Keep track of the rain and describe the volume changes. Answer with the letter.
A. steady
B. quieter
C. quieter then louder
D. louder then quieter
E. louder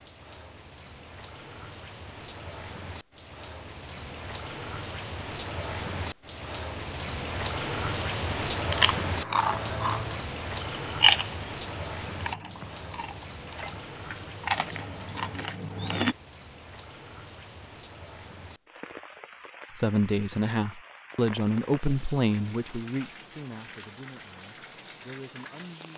D.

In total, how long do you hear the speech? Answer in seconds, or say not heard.
6 s.